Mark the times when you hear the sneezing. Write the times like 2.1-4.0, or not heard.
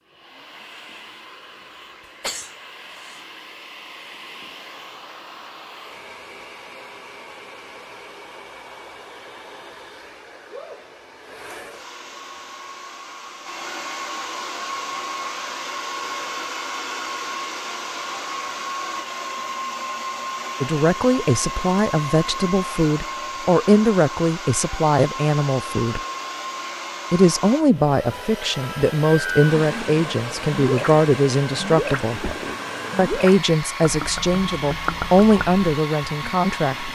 2.2-3.2.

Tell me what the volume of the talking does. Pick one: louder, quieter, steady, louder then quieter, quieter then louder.
steady.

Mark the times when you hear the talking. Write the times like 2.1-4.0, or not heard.
20.6-26.0, 27.1-32.2, 33.0-36.9.